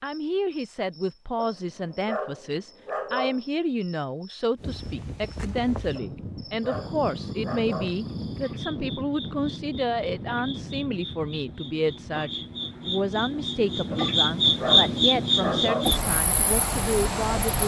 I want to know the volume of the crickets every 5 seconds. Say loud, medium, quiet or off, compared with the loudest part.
quiet, quiet, loud, loud.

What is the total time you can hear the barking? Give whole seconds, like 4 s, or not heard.
6 s.